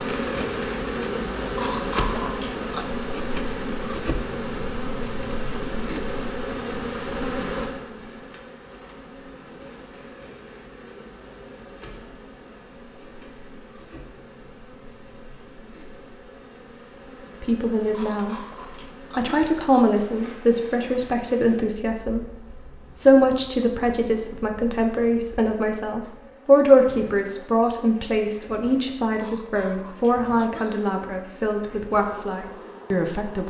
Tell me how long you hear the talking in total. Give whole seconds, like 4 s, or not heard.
15 s.